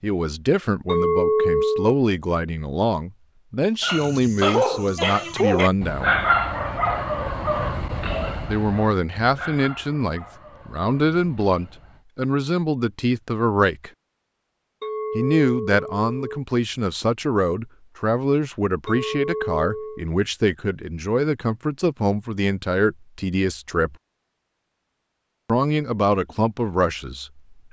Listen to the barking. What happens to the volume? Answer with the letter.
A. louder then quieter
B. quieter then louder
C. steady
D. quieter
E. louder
D.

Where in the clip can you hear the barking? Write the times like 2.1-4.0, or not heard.
3.8-12.1.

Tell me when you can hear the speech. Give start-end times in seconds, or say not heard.
0.0-6.2, 8.4-13.9, 15.2-23.9, 25.4-27.4.